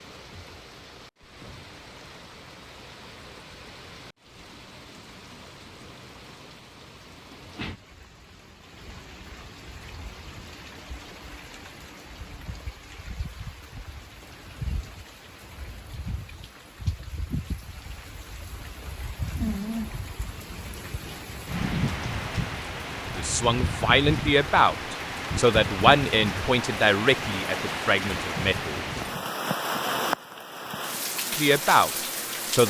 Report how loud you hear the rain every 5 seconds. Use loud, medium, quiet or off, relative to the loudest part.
quiet, quiet, quiet, medium, loud, loud, loud.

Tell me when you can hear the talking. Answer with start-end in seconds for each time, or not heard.
23.1-28.9, 31.4-32.6.